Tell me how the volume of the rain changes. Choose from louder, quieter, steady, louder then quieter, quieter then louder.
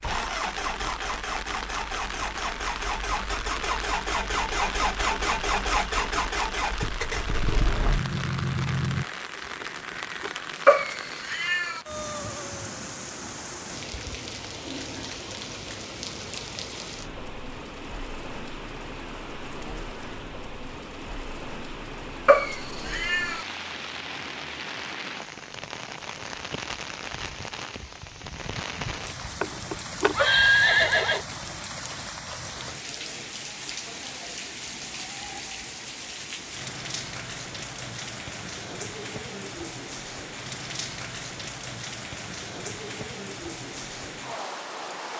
steady.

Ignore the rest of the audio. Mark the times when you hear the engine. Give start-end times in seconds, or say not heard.
0.0-9.1.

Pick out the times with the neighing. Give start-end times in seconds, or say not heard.
9.4-10.5, 29.2-31.5.